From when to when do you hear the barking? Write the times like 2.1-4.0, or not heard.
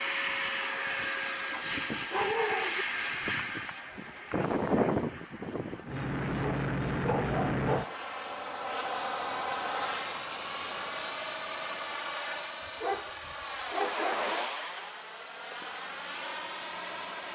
1.5-2.9, 6.3-8.0, 12.6-14.4.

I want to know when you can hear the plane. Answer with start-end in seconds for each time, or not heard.
0.0-17.3.